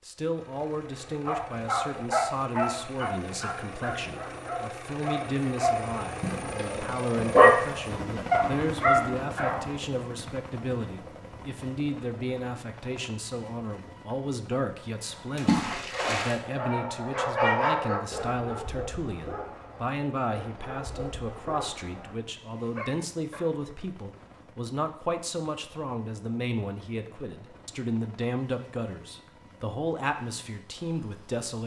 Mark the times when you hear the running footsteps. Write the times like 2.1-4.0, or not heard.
not heard.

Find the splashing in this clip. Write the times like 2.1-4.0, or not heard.
15.3-16.4.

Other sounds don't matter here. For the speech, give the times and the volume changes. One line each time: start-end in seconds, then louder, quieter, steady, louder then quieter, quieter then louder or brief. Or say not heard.
0.1-31.6 steady.